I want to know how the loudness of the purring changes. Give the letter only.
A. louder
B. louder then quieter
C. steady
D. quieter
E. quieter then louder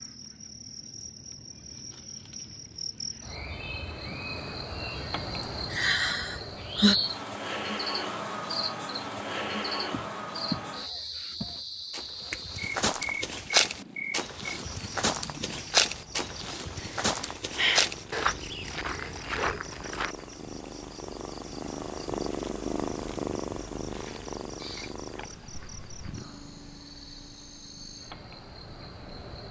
B.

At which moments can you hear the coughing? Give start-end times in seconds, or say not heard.
not heard.